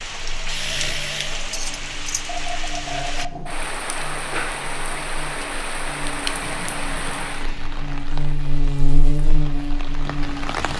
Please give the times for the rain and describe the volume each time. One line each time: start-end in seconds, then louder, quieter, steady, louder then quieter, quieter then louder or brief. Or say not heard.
0.0-10.7 quieter.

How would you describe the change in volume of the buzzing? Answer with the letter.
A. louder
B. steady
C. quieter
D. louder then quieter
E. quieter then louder
A.